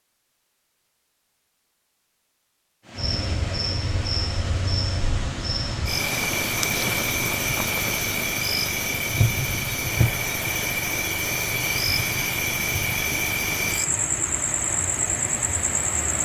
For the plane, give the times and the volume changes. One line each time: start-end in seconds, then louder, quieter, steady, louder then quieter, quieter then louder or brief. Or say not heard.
not heard.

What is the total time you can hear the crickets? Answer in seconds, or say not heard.
13 s.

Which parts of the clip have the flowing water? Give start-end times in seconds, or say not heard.
2.8-16.2.